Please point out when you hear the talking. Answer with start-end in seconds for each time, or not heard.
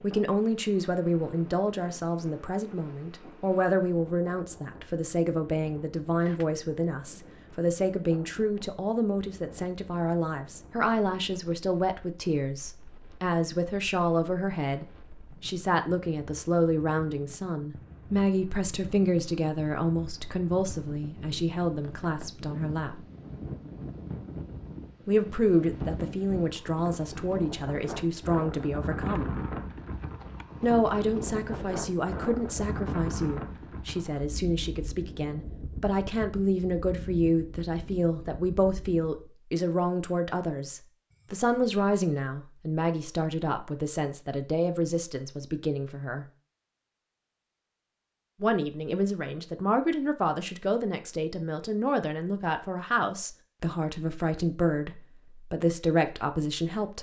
0.0-23.0, 25.1-29.4, 30.6-46.2, 48.4-56.9.